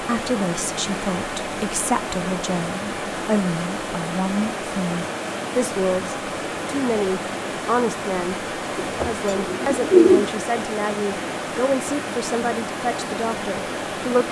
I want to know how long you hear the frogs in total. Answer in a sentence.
The frogs can't be heard in this clip.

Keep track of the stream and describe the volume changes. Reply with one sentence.
The volume of the stream stays about the same.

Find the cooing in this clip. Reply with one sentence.
The cooing can be heard from 8.8 to 10.2 s.